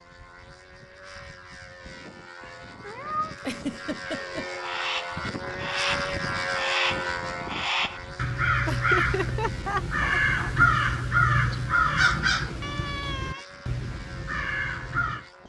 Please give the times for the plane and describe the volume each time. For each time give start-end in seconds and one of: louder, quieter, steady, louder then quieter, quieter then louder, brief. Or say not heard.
0.0-15.4 louder then quieter.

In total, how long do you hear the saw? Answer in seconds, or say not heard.
not heard.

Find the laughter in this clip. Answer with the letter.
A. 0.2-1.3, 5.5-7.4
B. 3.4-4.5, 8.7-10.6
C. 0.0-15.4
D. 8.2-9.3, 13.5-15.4
B.